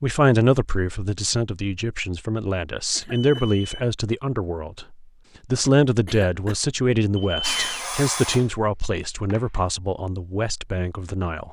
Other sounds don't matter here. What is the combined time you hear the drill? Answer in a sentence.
You can hear the drill for 2 seconds altogether.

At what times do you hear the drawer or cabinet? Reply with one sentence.
The drawer or cabinet can't be heard in this clip.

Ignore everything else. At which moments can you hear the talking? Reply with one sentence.
The talking can be heard from 0.0 to 11.4 s.